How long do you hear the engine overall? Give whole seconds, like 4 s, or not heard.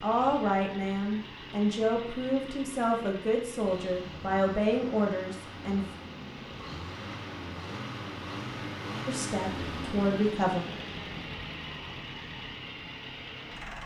14 s.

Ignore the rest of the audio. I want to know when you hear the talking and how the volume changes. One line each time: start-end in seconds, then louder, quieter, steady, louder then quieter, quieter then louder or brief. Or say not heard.
0.0-5.8 steady
9.1-10.6 brief.